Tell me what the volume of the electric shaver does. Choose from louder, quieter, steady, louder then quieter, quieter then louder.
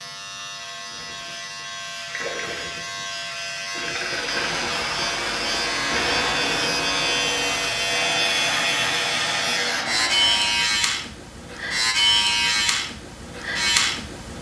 louder.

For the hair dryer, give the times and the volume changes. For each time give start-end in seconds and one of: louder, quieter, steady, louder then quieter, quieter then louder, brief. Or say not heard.
4.0-10.7 steady.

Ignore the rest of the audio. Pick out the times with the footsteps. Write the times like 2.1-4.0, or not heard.
not heard.